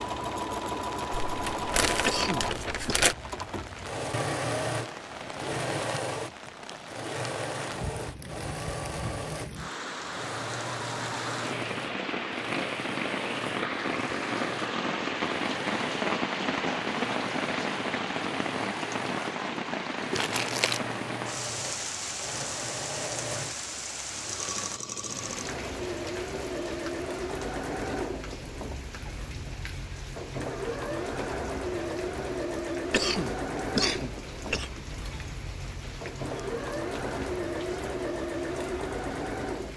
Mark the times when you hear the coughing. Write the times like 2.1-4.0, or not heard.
2.0-3.0, 32.9-34.7.